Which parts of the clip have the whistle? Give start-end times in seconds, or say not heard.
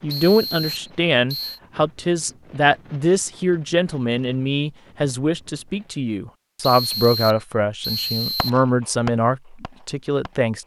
0.1-1.6, 6.6-8.7.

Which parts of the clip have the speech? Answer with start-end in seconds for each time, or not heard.
0.0-10.6.